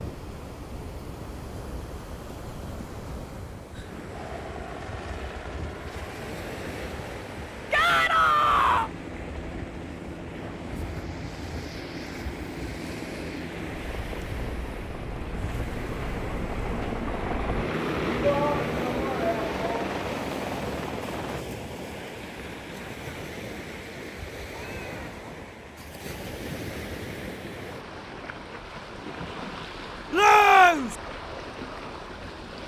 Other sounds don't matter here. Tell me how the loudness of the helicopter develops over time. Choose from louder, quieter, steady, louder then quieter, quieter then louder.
louder.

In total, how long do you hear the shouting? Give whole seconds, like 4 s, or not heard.
4 s.